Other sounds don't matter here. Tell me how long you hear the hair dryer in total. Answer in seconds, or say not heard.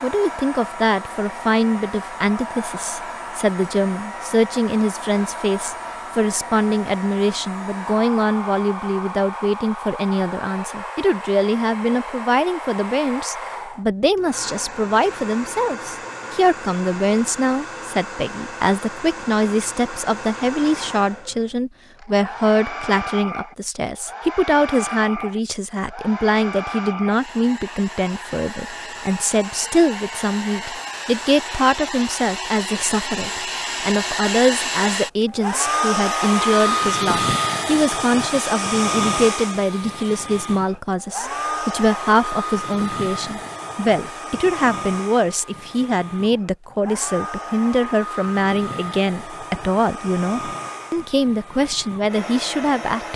53 s.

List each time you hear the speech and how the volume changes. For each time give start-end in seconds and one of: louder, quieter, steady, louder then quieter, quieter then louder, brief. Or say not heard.
0.0-53.1 steady.